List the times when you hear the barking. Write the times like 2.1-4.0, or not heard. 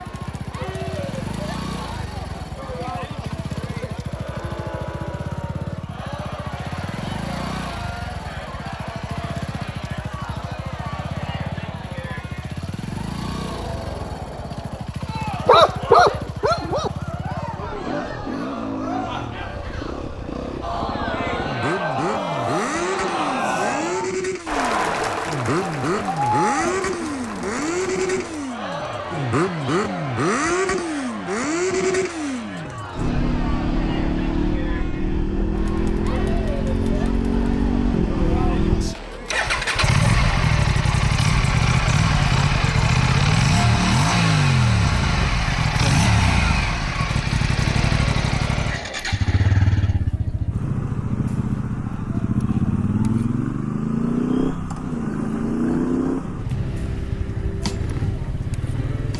15.4-16.9.